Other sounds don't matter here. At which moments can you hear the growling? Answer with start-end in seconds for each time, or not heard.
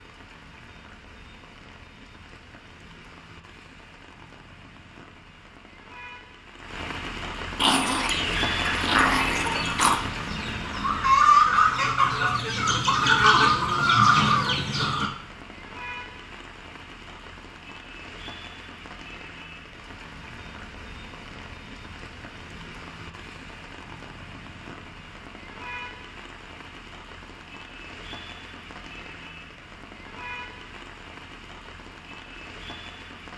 7.5-10.0.